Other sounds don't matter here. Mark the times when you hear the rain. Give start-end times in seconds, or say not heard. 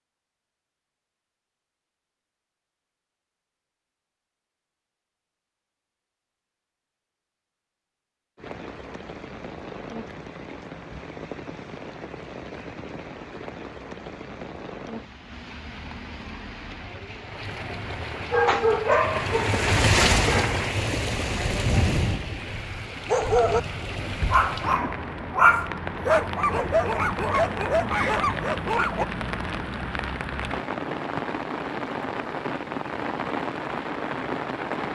8.3-34.9.